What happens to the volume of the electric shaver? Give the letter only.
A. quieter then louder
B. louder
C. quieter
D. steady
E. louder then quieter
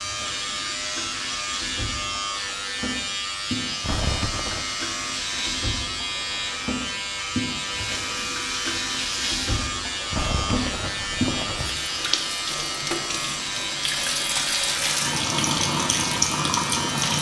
D.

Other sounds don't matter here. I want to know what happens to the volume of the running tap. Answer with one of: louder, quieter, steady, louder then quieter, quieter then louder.
louder.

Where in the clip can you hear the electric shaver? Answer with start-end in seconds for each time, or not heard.
0.0-17.1.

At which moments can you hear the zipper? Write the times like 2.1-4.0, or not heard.
3.8-4.7, 10.1-11.8.